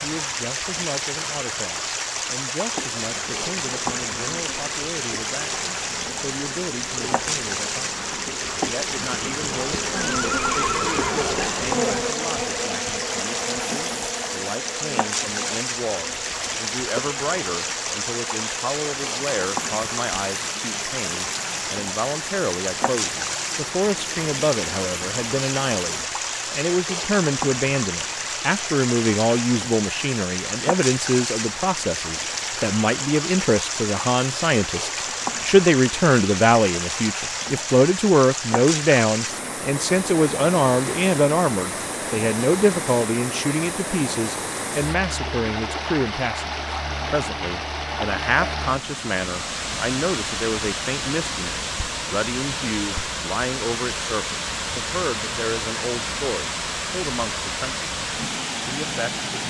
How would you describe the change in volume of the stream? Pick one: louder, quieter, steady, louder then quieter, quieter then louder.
steady.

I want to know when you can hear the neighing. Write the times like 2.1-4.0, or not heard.
10.1-11.4.